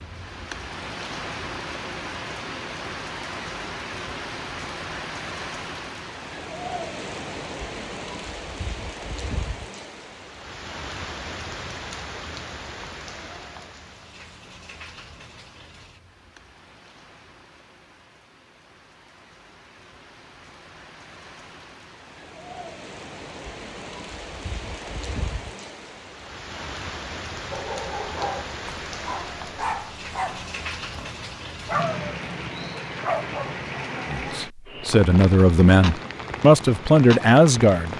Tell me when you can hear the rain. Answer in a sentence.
You can hear the rain from 0.0 to 37.9 s.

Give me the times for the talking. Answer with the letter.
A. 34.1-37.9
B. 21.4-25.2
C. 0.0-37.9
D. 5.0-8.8
A.